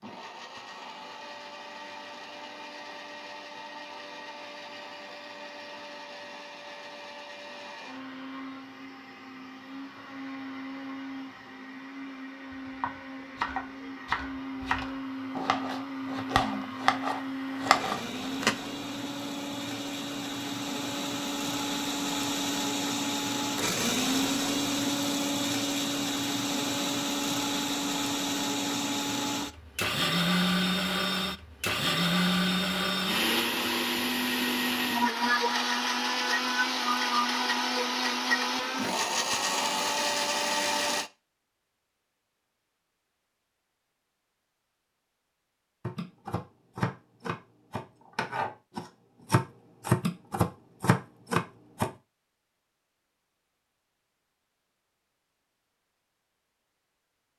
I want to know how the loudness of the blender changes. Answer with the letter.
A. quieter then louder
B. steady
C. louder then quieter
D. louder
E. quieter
D.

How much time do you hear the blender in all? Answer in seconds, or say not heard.
41 s.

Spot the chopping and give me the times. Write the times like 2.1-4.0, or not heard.
12.5-18.6, 45.9-51.9.